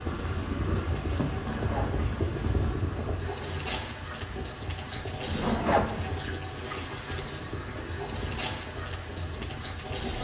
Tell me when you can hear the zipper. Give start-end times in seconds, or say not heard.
1.3-2.0, 5.2-6.2.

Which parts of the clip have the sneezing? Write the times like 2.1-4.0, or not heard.
not heard.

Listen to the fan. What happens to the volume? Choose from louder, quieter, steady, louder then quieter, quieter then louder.
quieter.